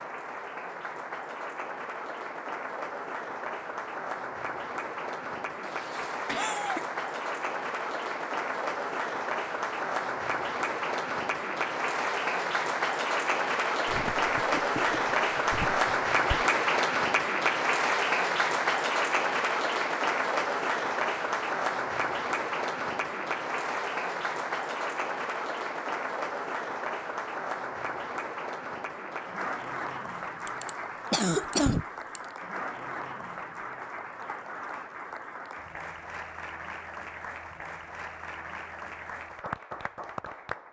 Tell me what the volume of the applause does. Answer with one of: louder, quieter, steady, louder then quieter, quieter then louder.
louder then quieter.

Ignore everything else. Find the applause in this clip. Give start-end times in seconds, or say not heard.
0.0-40.6.